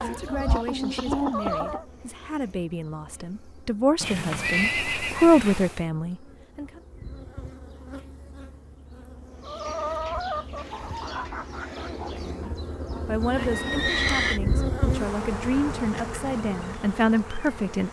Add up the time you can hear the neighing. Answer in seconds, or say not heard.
3 s.